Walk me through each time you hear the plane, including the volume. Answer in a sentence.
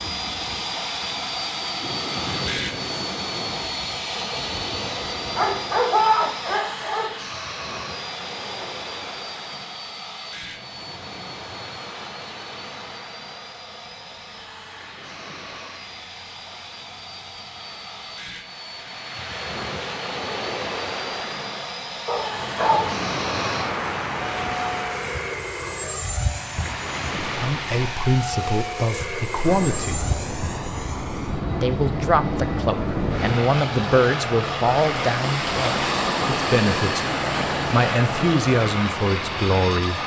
The plane can be heard from 0.0 to 40.0 s, getting quieter then louder.